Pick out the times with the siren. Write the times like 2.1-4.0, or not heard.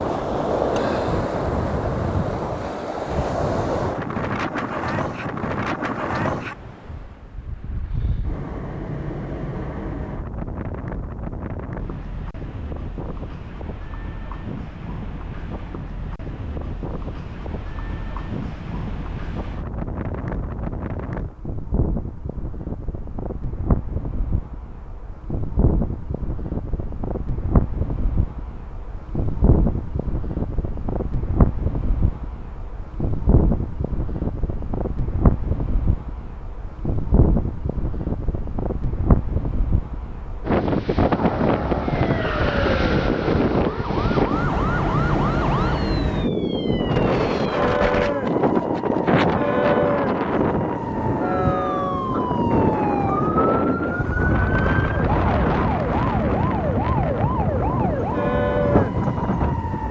41.0-59.8.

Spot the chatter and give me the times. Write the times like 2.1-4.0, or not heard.
not heard.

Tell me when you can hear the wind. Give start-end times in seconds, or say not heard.
0.0-59.8.